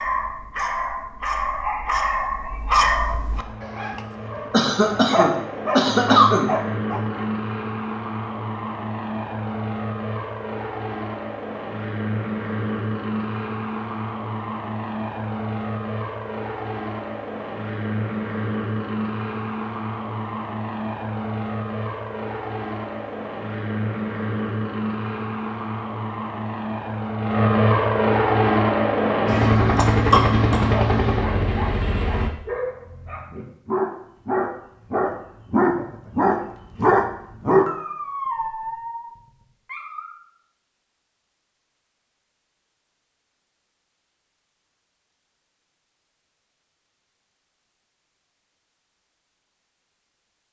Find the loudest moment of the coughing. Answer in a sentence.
The loudest moment of the coughing is at 6 seconds.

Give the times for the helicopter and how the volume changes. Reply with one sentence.
The helicopter can be heard from 3.3 to 32.3 s, getting louder.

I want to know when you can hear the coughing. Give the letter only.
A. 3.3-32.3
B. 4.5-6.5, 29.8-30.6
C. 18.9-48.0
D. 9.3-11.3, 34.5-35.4
B.